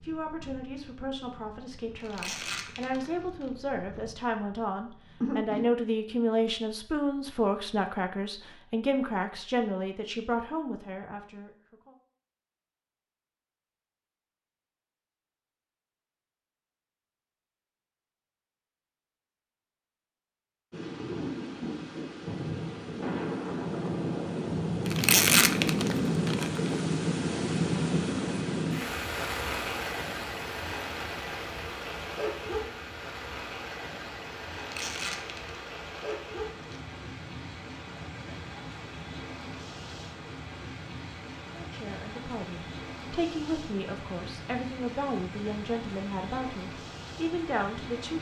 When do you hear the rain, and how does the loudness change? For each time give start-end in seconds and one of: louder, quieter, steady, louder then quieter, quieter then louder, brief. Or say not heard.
20.7-48.1 quieter.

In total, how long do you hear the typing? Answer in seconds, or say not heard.
not heard.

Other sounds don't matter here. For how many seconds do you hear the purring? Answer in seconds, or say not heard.
6 s.